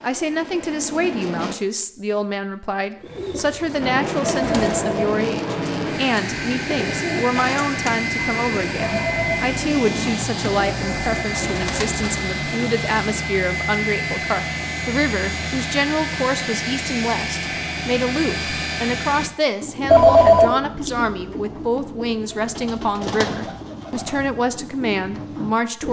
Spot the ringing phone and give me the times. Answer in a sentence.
The ringing phone can be heard from 4.2 to 5.0 s, from 8.8 to 9.4 s and from 19.9 to 20.6 s.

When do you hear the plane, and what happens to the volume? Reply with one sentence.
The plane can be heard briefly from 0.0 to 1.6 s; and from 3.8 to 19.3 s, at a steady volume.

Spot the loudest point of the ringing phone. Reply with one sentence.
The loudest moment of the ringing phone is at 20 seconds.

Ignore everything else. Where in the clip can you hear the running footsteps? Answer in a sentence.
You can't hear the running footsteps here.